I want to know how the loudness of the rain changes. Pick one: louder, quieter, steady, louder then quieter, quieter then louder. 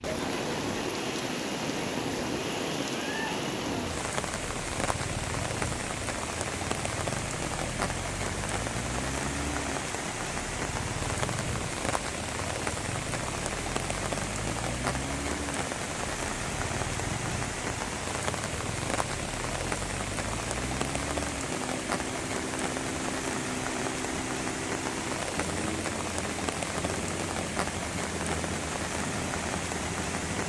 steady.